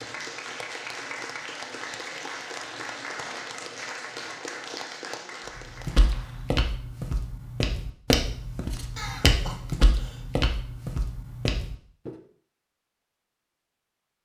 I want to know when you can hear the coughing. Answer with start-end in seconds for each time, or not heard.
8.9-10.3.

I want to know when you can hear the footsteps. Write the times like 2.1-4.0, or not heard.
5.8-12.1.